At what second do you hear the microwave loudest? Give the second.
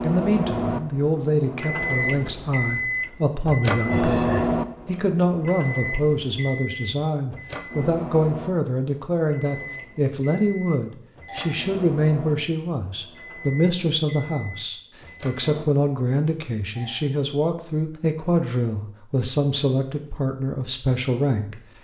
4 s.